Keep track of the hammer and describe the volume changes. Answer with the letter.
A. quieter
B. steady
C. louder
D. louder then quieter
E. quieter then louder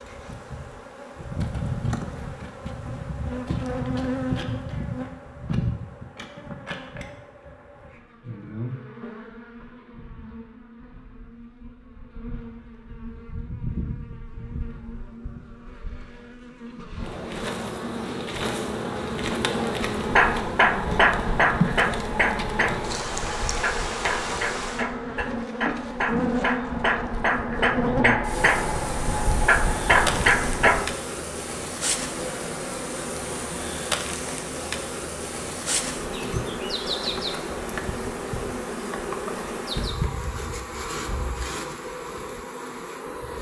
E.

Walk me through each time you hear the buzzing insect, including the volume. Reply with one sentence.
The buzzing insect can be heard from 0.0 to 43.3 s, getting quieter then louder.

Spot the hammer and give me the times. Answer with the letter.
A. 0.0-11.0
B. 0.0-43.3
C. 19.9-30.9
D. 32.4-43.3
C.